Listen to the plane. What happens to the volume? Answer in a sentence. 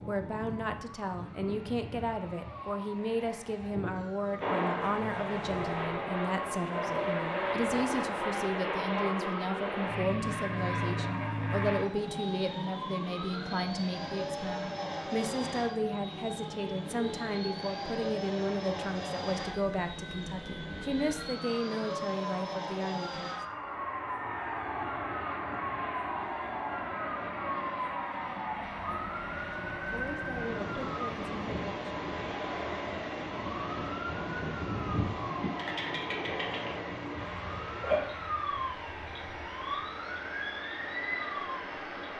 The volume of the plane goes down.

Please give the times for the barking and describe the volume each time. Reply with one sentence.
The barking can't be heard in this clip.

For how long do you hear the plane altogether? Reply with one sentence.
You can hear the plane for 38 seconds altogether.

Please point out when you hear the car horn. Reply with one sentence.
You can't hear the car horn here.